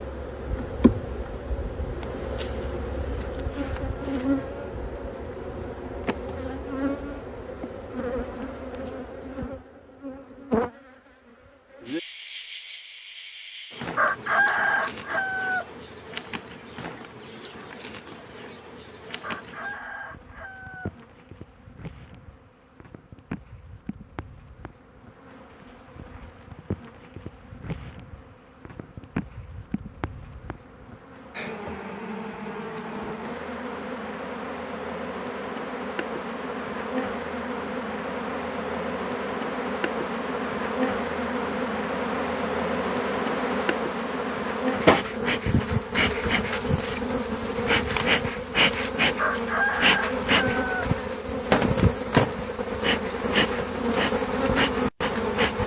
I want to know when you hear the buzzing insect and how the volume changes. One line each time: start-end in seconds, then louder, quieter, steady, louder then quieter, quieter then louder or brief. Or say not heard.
0.0-55.6 quieter then louder.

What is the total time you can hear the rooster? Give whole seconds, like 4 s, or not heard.
5 s.